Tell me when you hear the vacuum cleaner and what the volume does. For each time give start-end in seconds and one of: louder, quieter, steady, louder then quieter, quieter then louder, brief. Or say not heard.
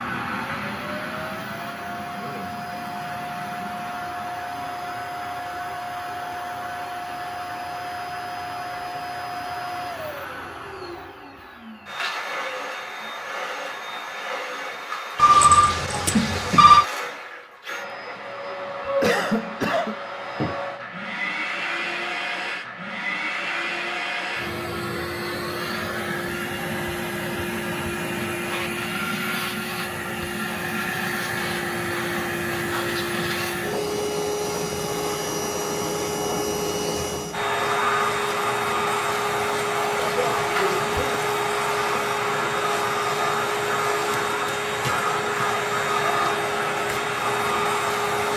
0.0-48.3 louder.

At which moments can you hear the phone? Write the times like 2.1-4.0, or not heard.
15.2-16.9.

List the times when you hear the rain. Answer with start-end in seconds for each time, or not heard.
not heard.